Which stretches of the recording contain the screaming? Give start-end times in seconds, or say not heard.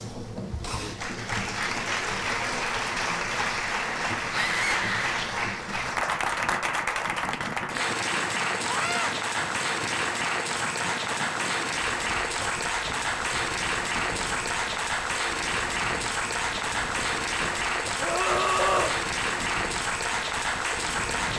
4.3-5.2, 8.7-9.2, 17.9-19.0.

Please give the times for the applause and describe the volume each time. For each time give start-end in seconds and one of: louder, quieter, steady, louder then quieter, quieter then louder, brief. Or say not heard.
0.0-21.3 steady.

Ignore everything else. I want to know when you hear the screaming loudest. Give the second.
19 s.